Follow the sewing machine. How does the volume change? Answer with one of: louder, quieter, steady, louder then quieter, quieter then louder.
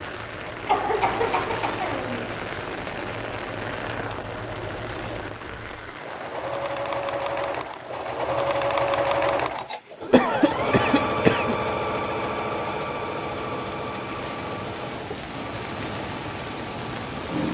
louder then quieter.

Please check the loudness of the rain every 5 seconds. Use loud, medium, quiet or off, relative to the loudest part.
loud, medium, medium, loud.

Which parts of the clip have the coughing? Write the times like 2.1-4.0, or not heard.
0.7-2.3, 10.1-11.6.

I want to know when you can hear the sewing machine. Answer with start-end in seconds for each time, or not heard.
0.0-17.4.